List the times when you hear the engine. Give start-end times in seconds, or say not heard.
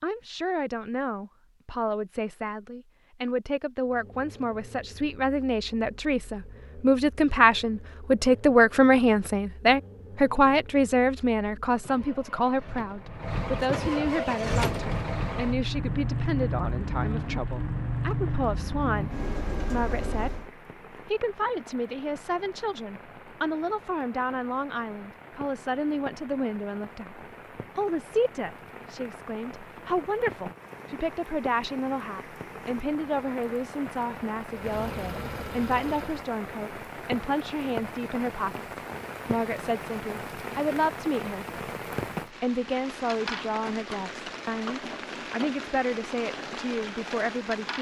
3.9-20.5, 34.5-36.2.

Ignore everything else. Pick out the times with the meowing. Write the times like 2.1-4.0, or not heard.
not heard.